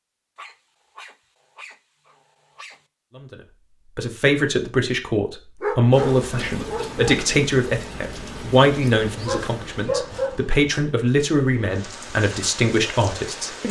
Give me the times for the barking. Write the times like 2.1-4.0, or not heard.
0.3-2.9, 5.6-7.2, 9.2-10.6.